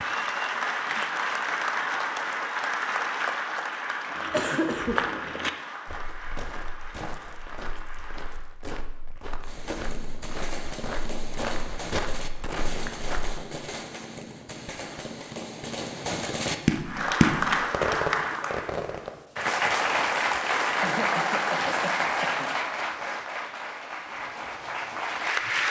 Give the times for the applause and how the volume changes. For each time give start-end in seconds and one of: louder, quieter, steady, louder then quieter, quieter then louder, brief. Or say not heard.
0.0-8.5 quieter
16.9-25.6 quieter.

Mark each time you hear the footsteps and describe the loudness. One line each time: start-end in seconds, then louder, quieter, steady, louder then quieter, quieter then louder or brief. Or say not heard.
4.0-13.3 quieter then louder.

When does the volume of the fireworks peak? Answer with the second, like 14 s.
17 s.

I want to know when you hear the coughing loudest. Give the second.
5 s.